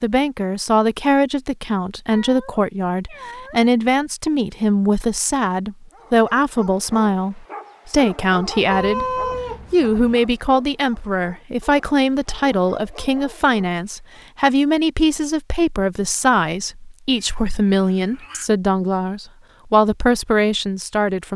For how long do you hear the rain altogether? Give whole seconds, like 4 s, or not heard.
not heard.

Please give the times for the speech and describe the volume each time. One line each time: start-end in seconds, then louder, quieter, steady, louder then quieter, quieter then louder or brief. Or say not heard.
0.0-21.3 steady.